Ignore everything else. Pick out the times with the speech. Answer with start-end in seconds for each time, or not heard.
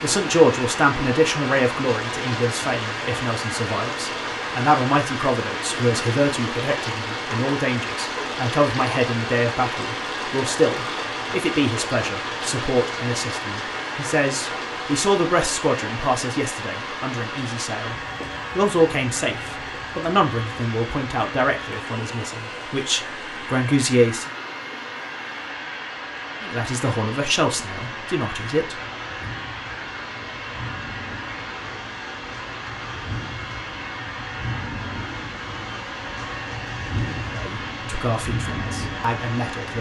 0.0-17.9, 18.6-24.3, 26.4-28.8, 37.3-39.7.